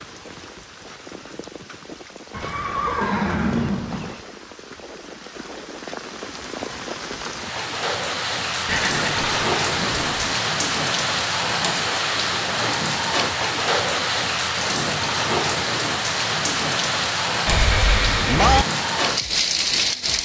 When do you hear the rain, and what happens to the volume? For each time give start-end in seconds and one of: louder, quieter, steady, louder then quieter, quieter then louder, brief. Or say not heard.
0.0-20.2 louder.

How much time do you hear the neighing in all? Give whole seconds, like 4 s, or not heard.
5 s.